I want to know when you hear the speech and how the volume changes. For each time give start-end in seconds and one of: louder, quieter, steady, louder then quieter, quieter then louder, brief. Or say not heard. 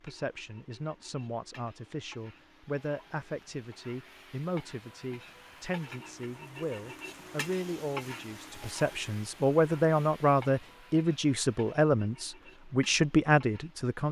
0.0-14.0 louder.